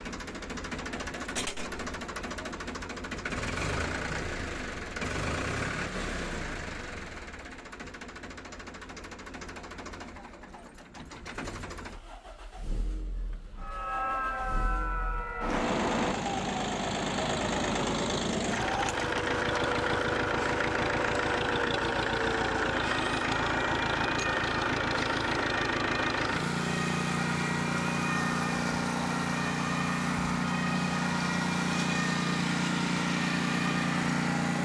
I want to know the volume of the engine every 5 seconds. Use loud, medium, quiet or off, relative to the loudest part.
medium, medium, quiet, loud, loud, loud, loud.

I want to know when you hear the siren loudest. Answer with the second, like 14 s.
16 s.